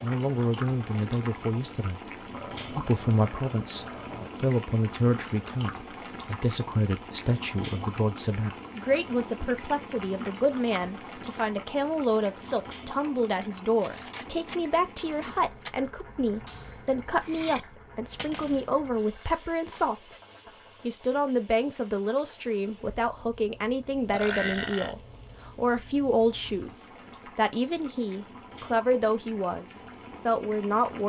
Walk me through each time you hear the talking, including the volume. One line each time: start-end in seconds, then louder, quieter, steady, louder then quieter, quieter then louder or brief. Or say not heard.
0.0-20.1 steady
20.8-31.0 steady.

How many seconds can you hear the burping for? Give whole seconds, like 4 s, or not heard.
3 s.